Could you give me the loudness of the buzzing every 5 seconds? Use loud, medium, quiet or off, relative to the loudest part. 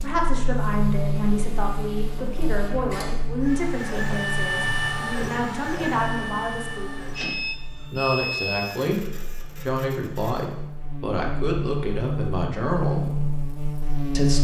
loud, medium, loud.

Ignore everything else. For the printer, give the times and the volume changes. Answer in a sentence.
The printer can be heard from 0.0 to 10.6 s, getting louder then quieter.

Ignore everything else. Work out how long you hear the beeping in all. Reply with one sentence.
The beeping can be heard for 2 seconds in total.